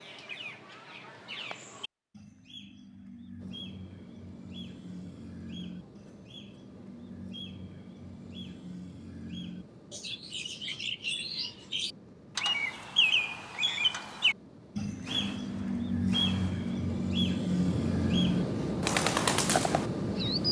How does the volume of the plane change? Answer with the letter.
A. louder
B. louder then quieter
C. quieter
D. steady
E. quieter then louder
A.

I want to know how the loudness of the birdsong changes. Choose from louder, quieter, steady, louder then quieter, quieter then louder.
louder.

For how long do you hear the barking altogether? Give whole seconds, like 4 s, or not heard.
not heard.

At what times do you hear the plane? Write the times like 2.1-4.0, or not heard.
3.4-20.4.